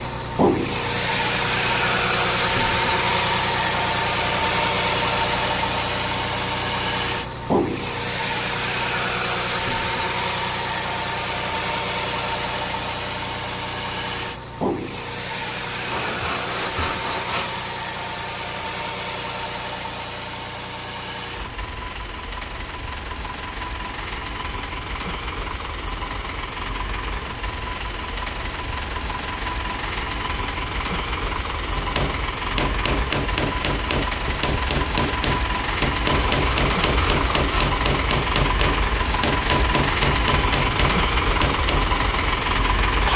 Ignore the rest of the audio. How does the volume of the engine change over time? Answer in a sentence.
The loudness of the engine goes down, then up.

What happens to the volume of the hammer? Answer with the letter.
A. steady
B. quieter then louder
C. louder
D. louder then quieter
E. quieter
A.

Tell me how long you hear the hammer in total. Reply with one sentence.
You can hear the hammer for 10 seconds altogether.